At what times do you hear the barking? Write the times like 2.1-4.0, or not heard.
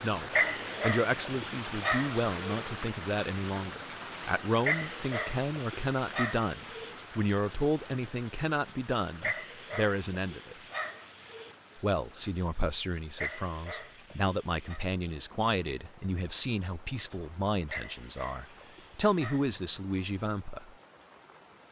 0.3-2.6, 4.6-7.0, 9.2-11.6, 13.2-14.8, 17.6-19.5.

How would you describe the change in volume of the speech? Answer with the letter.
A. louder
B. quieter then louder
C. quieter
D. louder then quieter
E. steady
E.